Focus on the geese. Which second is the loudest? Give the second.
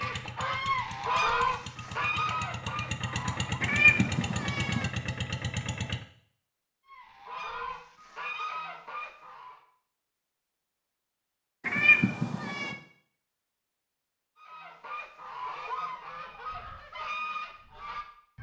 1 s.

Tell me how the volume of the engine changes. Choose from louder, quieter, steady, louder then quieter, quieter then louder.
louder.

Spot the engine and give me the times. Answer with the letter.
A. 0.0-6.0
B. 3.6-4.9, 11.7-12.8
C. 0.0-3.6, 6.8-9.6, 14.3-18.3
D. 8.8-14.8
A.